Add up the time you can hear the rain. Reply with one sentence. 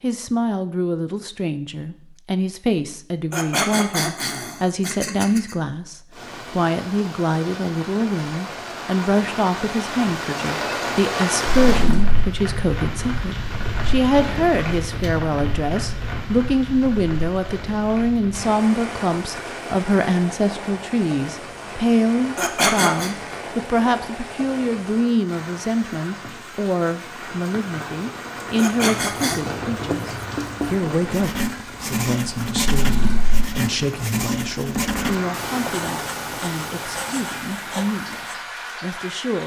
You can hear the rain for 33 seconds altogether.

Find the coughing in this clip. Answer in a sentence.
The coughing can be heard from 3.3 to 5.5 s, from 22.4 to 23.1 s and from 28.6 to 29.4 s.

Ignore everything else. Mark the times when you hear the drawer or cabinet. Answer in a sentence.
The drawer or cabinet can be heard from 11.4 to 12.2 s and from 32.7 to 33.5 s.